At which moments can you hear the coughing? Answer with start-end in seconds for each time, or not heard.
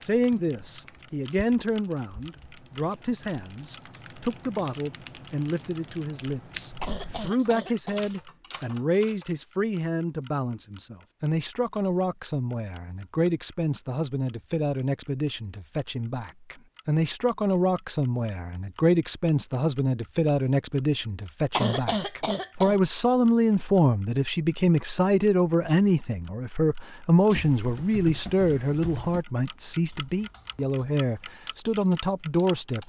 6.8-8.1, 21.5-22.8.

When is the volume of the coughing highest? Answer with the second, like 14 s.
22 s.